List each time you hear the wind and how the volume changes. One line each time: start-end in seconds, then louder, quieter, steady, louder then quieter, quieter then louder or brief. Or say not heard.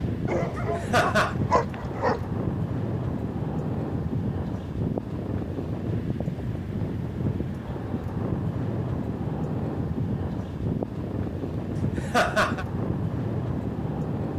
0.0-14.3 steady.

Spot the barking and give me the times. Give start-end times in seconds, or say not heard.
0.2-2.2.